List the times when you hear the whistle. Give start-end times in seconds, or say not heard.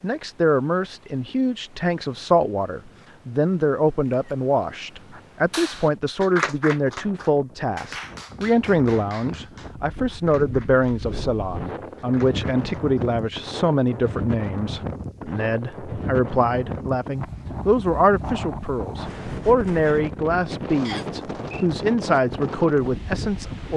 20.8-21.6.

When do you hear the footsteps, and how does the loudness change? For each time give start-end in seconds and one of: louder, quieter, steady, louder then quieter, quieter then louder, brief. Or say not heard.
not heard.